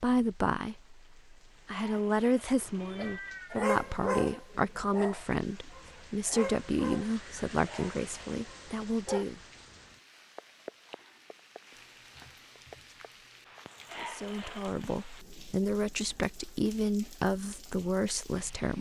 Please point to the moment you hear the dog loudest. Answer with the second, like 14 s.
4 s.